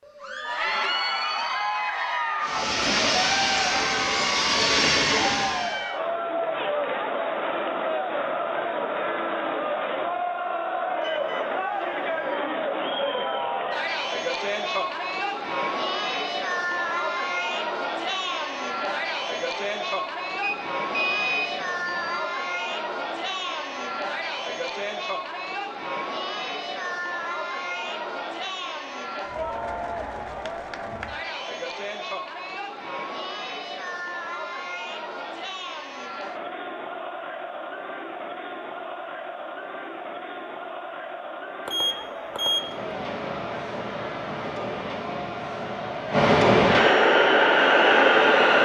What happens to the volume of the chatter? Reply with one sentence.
The loudness of the chatter goes down.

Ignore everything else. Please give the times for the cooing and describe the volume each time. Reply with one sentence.
The cooing can't be heard in this clip.